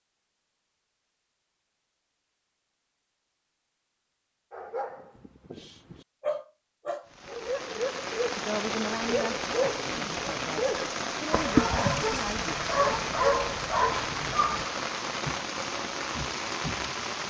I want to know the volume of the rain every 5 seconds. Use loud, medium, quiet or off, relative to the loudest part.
off, loud, loud, loud.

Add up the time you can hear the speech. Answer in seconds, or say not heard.
4 s.